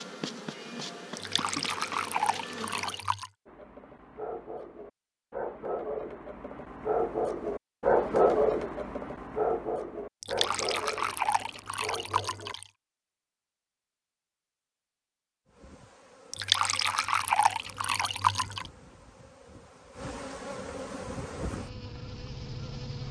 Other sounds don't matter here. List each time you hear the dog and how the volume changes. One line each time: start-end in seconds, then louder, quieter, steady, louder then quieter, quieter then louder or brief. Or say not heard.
3.5-12.6 louder then quieter.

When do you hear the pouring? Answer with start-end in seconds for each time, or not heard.
1.1-3.3, 10.2-12.7, 16.3-18.7.